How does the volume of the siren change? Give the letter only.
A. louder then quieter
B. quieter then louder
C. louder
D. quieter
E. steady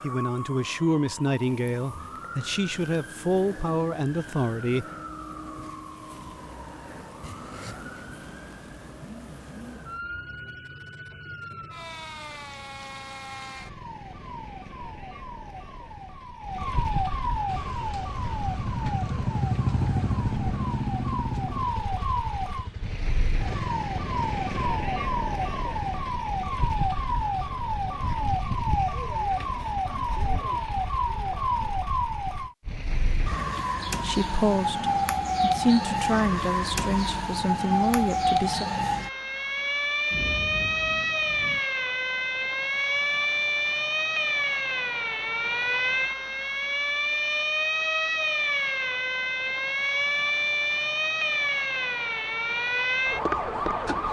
C.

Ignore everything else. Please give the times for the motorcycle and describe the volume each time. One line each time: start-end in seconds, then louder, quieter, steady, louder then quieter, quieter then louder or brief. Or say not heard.
17.4-24.7 louder then quieter.